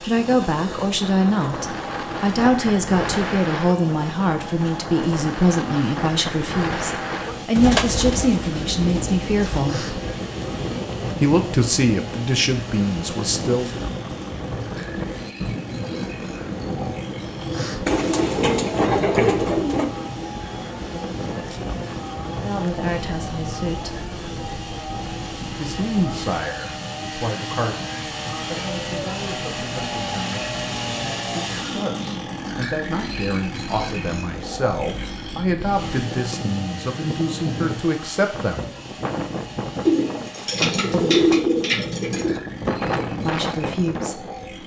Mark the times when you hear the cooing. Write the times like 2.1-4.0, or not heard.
7.5-9.7, 17.9-19.9, 39.9-42.4.